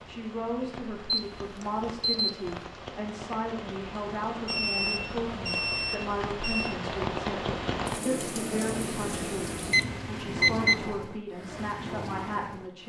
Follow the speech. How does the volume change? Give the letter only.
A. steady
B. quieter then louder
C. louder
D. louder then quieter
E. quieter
A.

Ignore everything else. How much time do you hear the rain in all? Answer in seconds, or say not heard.
13 s.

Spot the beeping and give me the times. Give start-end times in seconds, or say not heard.
1.1-2.4, 4.5-6.8, 8.7-10.8.